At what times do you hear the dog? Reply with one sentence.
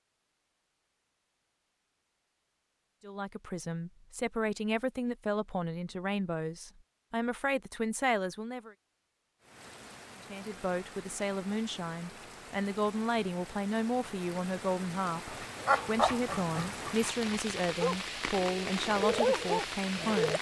The dog can be heard from 15.3 to 20.3 s.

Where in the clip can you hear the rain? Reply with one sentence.
You can hear the rain from 9.4 to 20.3 s.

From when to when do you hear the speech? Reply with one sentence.
You can hear the speech from 3.0 to 8.8 s and from 10.3 to 20.3 s.